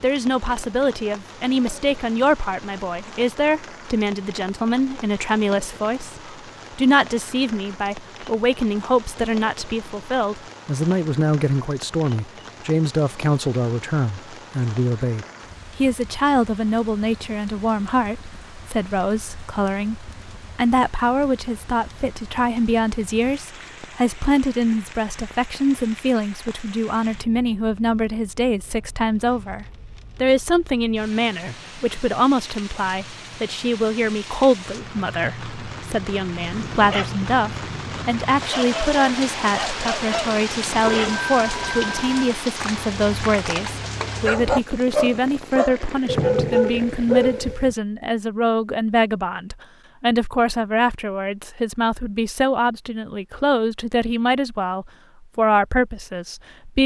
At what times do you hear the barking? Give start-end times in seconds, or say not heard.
36.4-47.8.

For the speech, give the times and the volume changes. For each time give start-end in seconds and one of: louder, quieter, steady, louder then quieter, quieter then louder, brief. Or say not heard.
0.0-56.8 steady.